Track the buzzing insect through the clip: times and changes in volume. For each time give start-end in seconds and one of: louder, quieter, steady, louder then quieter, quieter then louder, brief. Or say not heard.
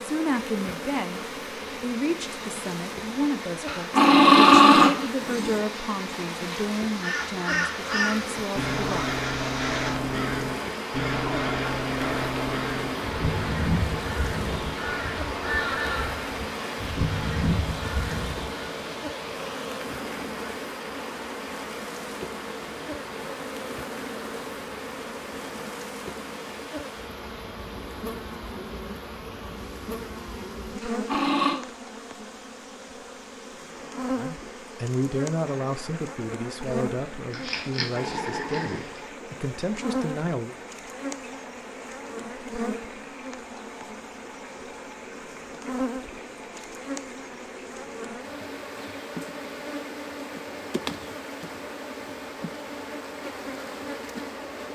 0.0-54.7 steady.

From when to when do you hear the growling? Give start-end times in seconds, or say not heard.
3.6-5.6, 30.8-31.6, 37.3-39.0.